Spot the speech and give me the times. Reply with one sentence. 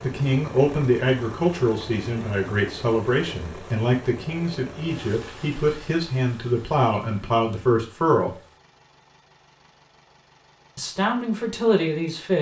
You can hear the speech from 0.0 to 8.3 s and from 10.8 to 12.3 s.